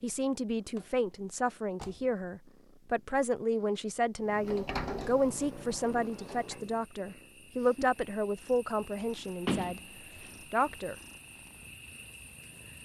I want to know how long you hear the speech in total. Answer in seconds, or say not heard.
10 s.